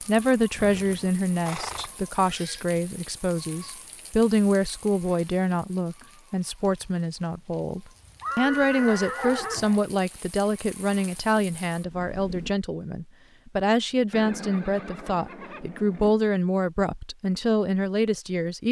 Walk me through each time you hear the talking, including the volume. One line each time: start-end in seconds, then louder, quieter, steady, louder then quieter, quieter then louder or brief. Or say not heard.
0.1-18.6 steady.